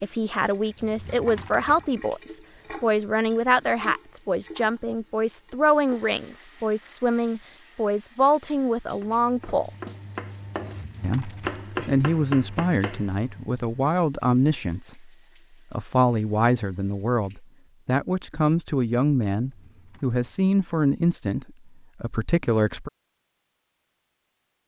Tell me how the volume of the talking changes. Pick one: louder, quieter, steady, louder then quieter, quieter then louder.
steady.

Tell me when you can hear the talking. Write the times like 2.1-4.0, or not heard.
0.0-9.7, 11.0-15.1, 15.7-22.9.